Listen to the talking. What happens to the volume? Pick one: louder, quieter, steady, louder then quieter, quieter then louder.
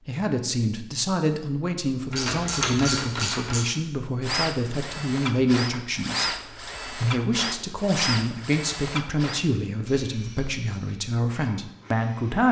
steady.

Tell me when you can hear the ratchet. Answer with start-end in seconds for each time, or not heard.
2.1-3.6.